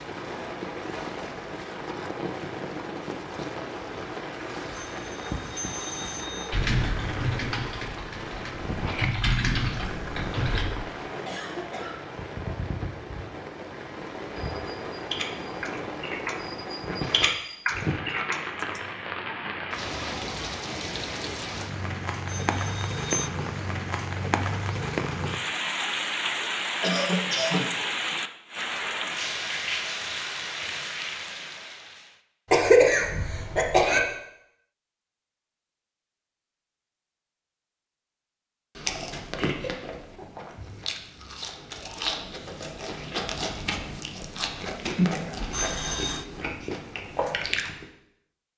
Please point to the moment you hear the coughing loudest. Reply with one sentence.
The loudest moment of the coughing is at 33 seconds.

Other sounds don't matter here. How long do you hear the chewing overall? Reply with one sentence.
You can hear the chewing for 9 seconds altogether.